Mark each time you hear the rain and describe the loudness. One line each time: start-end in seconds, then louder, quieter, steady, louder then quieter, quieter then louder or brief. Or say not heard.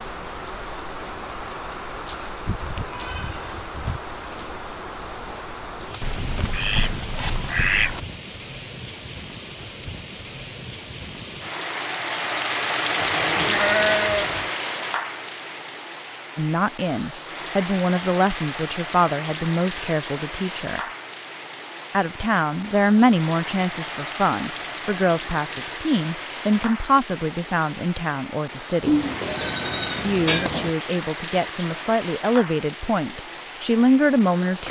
0.0-34.6 louder then quieter.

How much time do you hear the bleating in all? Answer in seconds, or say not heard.
5 s.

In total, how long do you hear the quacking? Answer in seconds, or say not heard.
2 s.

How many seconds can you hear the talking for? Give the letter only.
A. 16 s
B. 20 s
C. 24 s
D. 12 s
A.